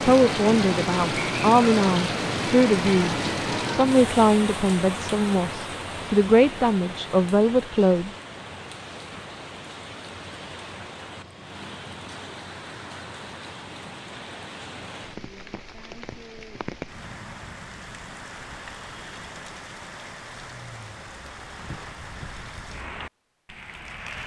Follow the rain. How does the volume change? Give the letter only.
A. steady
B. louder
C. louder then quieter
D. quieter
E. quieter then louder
D.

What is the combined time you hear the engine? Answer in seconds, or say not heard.
2 s.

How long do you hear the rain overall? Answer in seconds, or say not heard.
24 s.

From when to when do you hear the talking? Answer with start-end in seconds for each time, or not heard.
0.1-8.1.